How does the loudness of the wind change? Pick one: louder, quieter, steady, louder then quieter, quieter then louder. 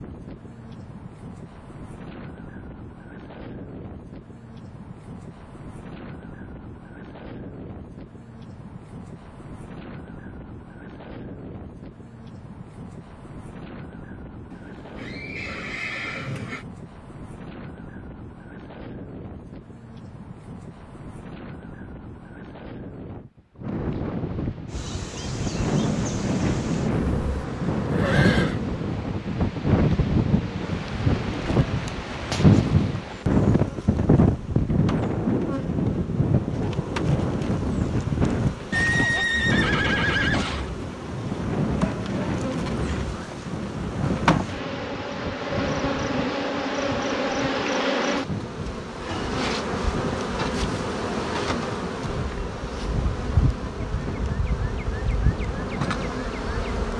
louder then quieter.